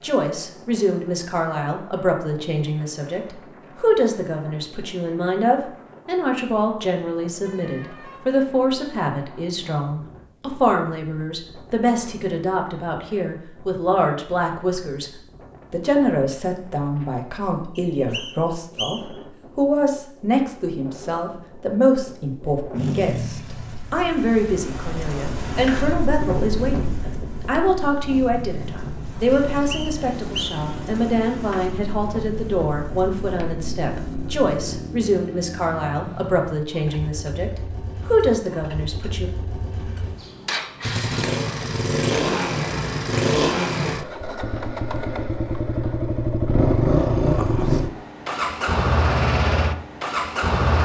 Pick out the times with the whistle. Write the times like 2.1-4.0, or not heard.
17.8-19.2, 29.3-30.7.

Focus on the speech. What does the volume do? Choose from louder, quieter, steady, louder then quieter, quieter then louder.
steady.